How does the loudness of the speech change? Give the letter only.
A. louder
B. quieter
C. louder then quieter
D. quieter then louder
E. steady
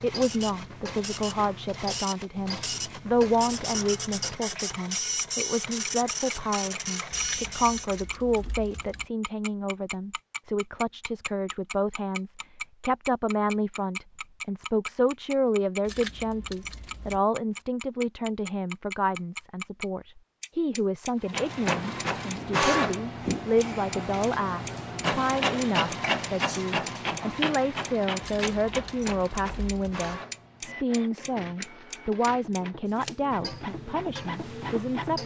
E.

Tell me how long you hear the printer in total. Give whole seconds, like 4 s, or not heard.
22 s.